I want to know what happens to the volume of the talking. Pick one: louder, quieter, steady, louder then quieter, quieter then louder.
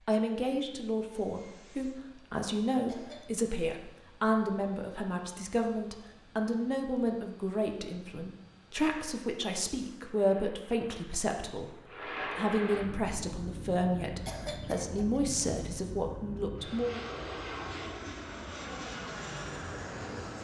steady.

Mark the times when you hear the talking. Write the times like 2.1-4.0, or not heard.
0.1-11.8, 12.3-17.0.